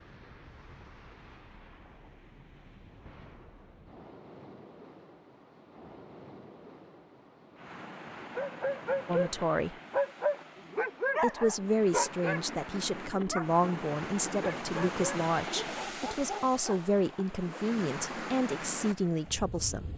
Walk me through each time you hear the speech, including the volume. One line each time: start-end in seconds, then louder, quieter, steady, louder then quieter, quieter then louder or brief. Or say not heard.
9.1-9.8 brief
11.2-19.9 steady.